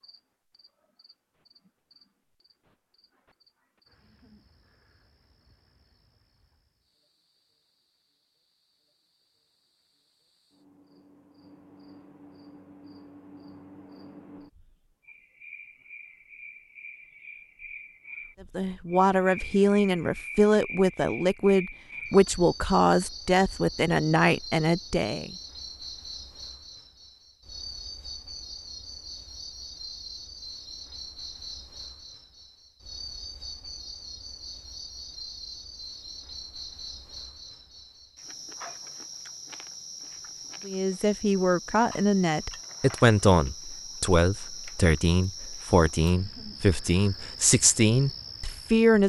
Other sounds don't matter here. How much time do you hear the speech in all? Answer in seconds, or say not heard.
15 s.